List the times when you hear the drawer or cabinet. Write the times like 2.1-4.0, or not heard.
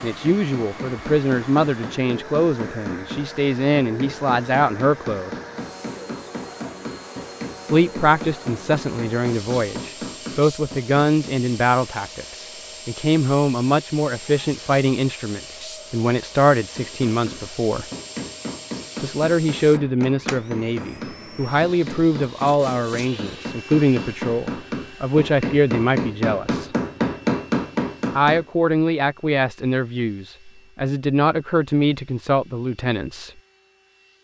not heard.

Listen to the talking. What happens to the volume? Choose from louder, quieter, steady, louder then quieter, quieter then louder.
steady.